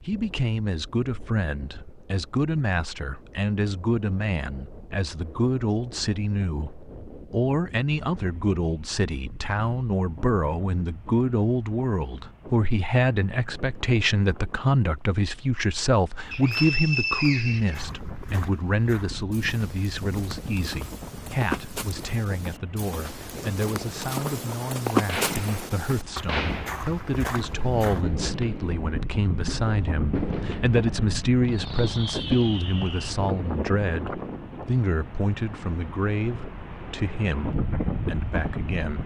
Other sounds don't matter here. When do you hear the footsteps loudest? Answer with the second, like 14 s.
25 s.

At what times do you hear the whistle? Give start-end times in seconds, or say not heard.
16.3-17.9.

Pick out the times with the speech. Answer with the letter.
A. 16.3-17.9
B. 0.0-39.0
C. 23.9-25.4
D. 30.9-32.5
B.